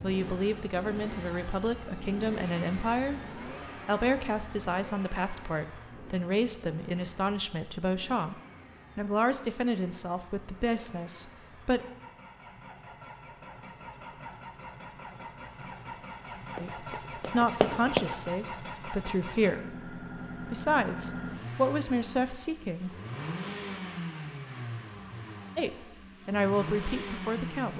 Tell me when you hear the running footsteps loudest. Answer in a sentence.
The volume of the running footsteps peaks at 18 seconds.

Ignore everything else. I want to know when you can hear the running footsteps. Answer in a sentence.
You can hear the running footsteps from 16.6 to 18.0 s.